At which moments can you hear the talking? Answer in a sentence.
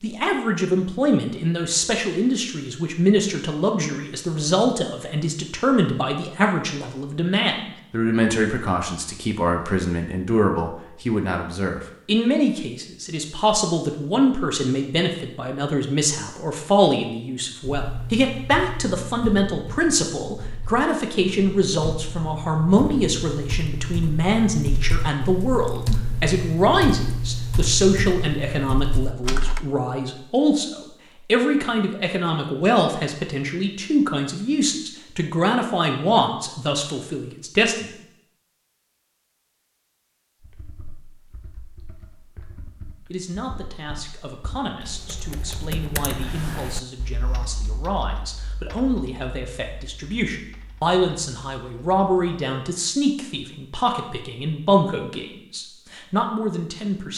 The talking can be heard from 0.0 to 37.9 s and from 43.1 to 57.1 s.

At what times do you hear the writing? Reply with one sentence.
The writing can't be heard in this clip.